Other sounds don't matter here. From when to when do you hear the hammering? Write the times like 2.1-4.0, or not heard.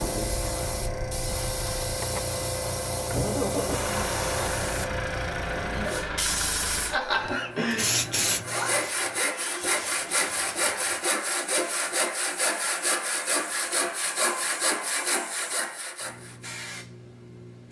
not heard.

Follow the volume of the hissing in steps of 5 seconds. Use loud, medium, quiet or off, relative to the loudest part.
loud, loud, quiet, quiet.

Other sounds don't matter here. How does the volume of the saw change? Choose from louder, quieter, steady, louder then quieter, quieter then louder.
steady.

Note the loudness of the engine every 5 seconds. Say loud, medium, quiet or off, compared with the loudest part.
loud, loud, off, off.